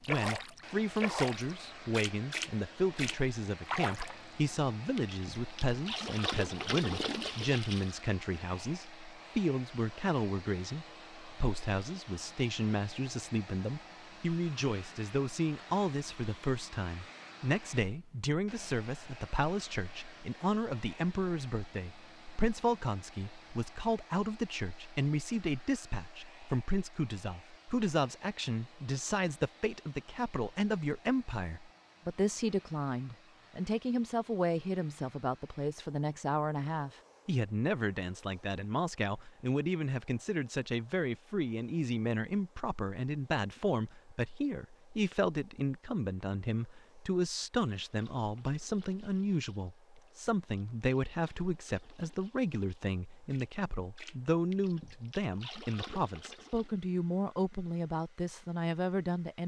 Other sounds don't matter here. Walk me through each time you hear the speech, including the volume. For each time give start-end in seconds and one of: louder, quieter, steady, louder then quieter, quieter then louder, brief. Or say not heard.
0.1-59.4 steady.